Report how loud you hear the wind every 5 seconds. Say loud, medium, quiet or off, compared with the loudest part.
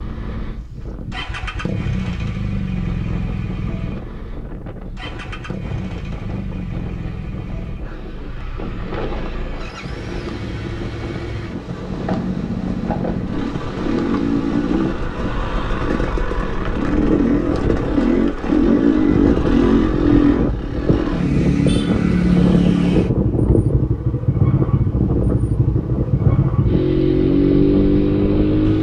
quiet, medium, medium, loud, loud, loud.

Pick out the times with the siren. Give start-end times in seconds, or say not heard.
not heard.